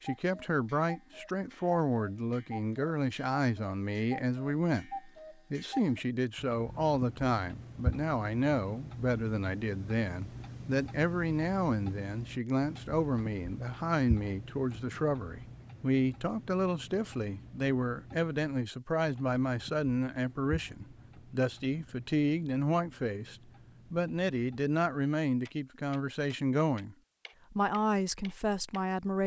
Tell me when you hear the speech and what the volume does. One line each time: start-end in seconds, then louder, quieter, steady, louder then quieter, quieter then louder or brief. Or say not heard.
0.0-29.2 steady.